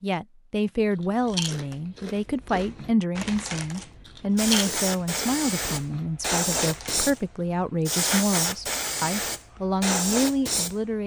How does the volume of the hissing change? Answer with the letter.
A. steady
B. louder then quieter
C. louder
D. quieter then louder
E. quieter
A.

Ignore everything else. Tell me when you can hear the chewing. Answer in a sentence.
You can hear the chewing from 0.9 to 7.2 s.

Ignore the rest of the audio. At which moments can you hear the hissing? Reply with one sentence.
You can hear the hissing from 4.3 to 11.0 s.